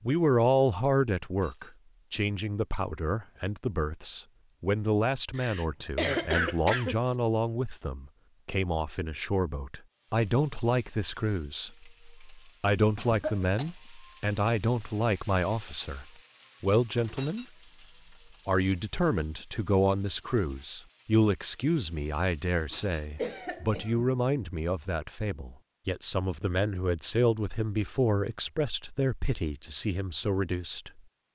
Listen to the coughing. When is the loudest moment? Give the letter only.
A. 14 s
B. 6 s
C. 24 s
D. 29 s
B.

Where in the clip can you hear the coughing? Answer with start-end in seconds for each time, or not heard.
5.3-7.2, 12.9-13.7, 22.7-24.1.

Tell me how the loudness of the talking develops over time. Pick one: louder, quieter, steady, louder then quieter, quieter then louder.
steady.